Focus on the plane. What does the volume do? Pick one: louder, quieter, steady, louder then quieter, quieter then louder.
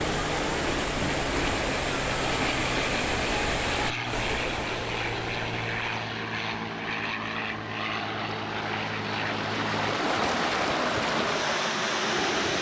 steady.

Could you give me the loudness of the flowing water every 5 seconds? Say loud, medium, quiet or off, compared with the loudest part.
loud, medium, loud.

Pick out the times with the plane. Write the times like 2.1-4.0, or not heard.
0.0-12.5.